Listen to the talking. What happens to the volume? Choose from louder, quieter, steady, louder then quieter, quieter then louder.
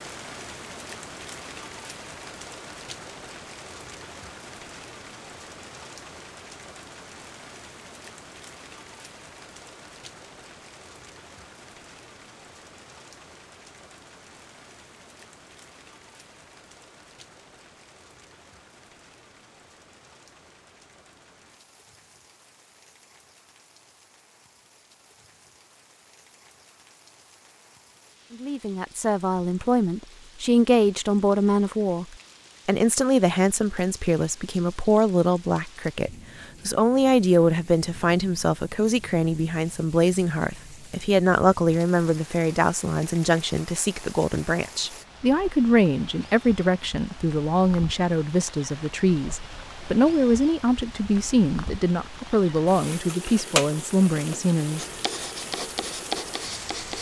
steady.